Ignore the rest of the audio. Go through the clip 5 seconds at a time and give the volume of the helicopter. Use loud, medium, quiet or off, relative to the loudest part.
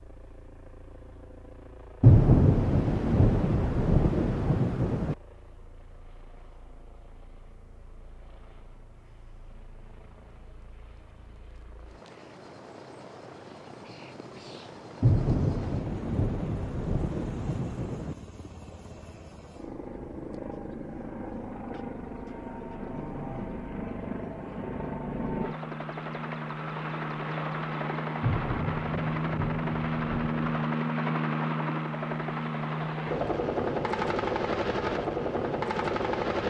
quiet, quiet, quiet, quiet, medium, loud, loud, loud.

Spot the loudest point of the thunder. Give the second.
2 s.